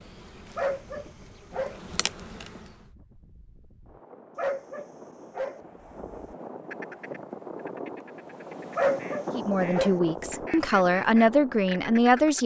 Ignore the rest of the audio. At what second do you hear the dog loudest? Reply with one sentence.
The volume of the dog peaks at 9 seconds.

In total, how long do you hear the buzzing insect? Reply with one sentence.
The buzzing insect can be heard for 3 seconds in total.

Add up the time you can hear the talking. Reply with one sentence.
The talking can be heard for 3 seconds in total.